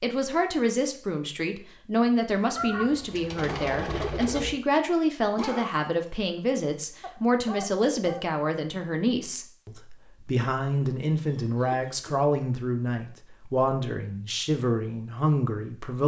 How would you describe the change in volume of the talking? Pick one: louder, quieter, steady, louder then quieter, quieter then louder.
steady.